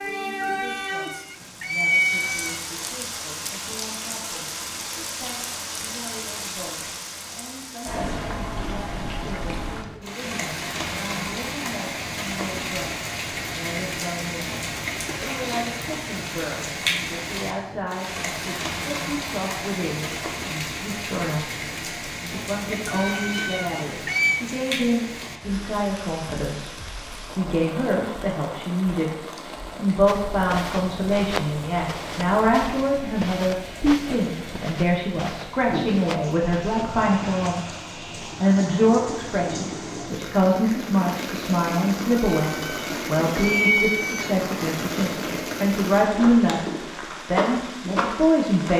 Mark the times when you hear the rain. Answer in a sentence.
The rain can be heard from 0.0 to 48.7 s.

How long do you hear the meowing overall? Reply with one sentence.
You can hear the meowing for 6 seconds altogether.